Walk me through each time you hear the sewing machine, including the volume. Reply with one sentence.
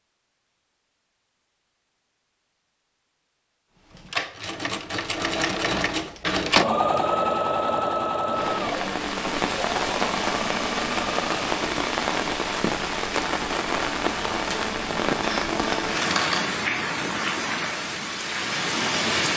You can hear the sewing machine from 3.9 to 11.5 s, getting louder then quieter.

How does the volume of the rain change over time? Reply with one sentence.
The volume of the rain stays about the same.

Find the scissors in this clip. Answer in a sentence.
The scissors can be heard from 15.2 to 16.4 s.